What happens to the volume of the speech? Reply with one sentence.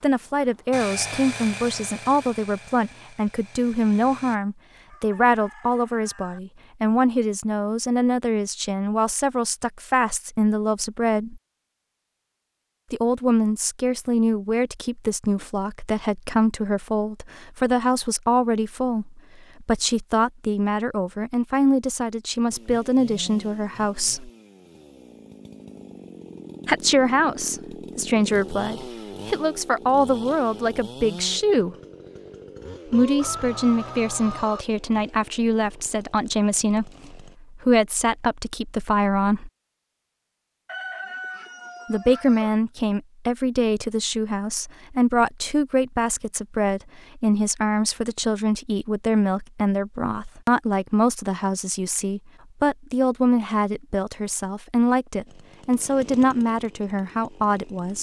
The loudness of the speech stays about the same.